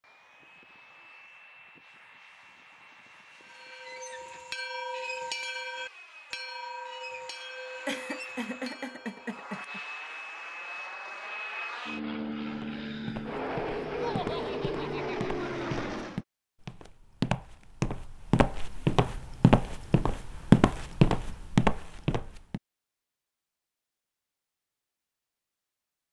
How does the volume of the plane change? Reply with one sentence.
The loudness of the plane goes up.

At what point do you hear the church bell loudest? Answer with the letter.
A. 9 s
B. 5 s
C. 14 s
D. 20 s
B.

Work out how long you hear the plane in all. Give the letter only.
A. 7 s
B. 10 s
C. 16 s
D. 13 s
C.